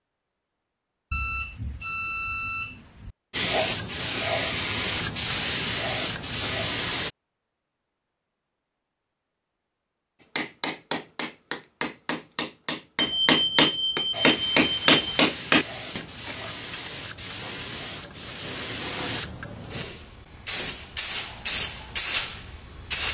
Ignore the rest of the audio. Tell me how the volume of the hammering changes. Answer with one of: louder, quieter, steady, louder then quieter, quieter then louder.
louder.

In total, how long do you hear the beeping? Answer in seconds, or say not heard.
4 s.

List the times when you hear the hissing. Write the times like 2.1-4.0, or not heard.
3.3-7.1, 14.1-23.0.